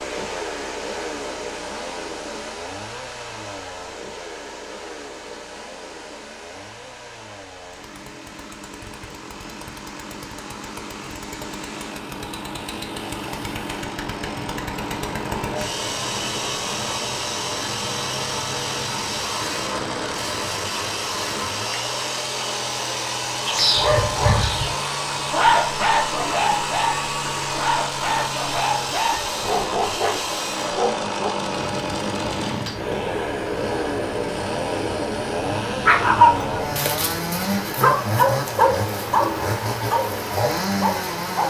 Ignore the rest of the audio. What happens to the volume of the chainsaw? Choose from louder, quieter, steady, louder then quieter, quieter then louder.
louder.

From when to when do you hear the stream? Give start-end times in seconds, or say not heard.
0.0-41.4.